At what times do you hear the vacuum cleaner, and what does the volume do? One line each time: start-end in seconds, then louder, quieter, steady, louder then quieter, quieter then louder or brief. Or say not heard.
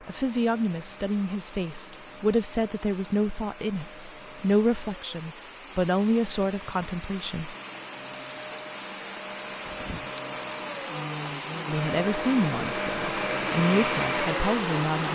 0.0-15.1 louder.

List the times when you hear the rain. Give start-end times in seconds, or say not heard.
0.0-15.1.